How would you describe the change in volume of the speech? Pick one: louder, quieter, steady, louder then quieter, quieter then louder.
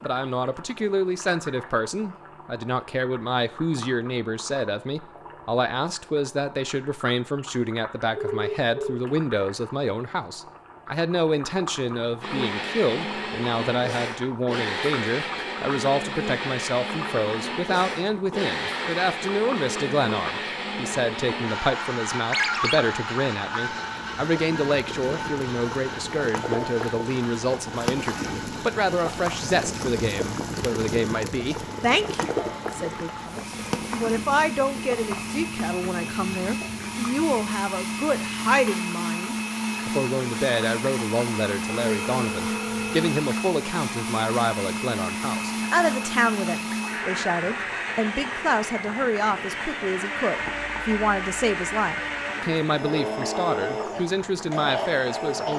steady.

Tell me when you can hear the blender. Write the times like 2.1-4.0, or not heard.
12.2-55.5.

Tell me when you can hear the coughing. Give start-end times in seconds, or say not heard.
not heard.